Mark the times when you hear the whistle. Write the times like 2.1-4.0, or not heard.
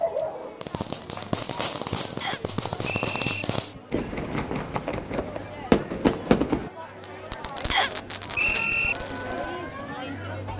2.2-3.2, 7.7-8.9.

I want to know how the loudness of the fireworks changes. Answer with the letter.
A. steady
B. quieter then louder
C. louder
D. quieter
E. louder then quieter
D.